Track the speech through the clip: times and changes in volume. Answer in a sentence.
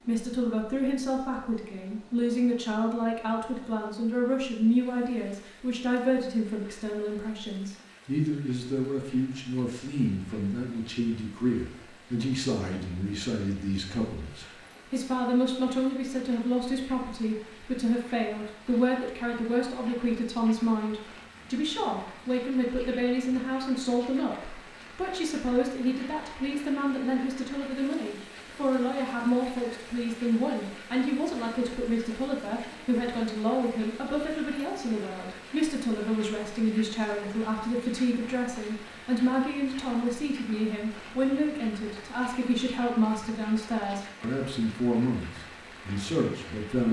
You can hear the speech from 0.1 to 46.8 s, at a steady volume.